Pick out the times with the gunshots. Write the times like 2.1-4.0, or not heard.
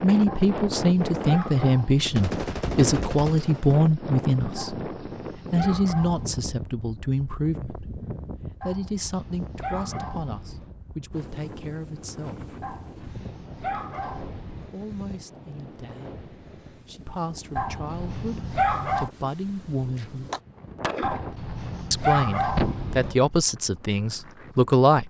2.1-3.8, 20.2-22.8.